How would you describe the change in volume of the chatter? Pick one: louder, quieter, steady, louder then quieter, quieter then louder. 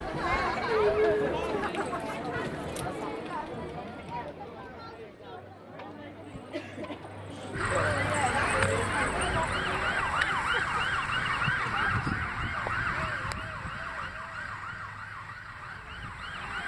quieter then louder.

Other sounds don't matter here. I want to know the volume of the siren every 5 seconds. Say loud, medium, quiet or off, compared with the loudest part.
off, loud, loud, medium.